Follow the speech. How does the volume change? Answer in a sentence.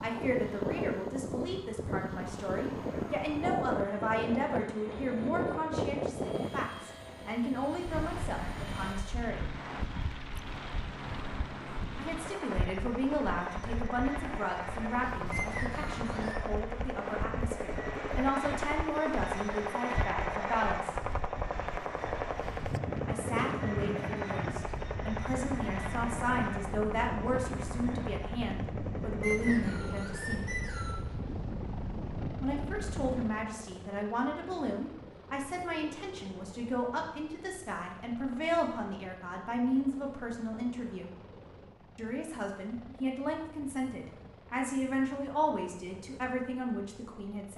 The loudness of the speech stays about the same.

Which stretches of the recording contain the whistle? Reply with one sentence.
You can hear the whistle from 15.3 to 16.4 s and from 29.2 to 30.9 s.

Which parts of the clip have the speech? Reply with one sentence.
The speech can be heard from 0.0 to 9.5 s, from 11.9 to 20.9 s, from 23.1 to 30.4 s, from 32.4 to 41.1 s and from 42.0 to 47.5 s.